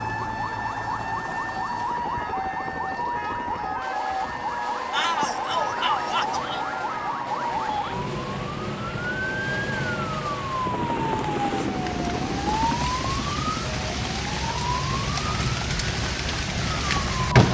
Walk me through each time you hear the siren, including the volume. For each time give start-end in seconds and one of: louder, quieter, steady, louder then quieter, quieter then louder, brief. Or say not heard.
0.0-17.5 steady.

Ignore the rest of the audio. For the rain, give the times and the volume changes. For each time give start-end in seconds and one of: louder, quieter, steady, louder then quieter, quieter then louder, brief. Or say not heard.
4.8-17.5 louder.